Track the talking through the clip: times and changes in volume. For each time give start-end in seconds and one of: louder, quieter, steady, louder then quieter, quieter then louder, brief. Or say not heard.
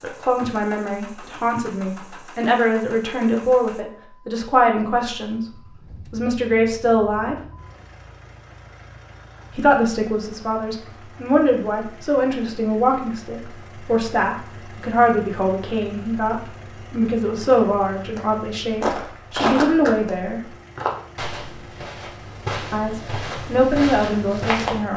0.0-5.4 louder
6.1-7.3 brief
9.5-20.4 steady
22.7-24.9 brief.